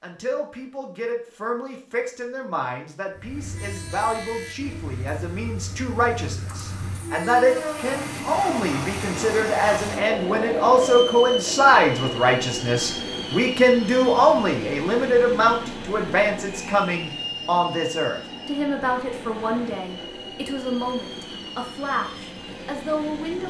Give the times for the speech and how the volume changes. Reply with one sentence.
The speech can be heard from 0.0 to 23.4 s, getting louder then quieter.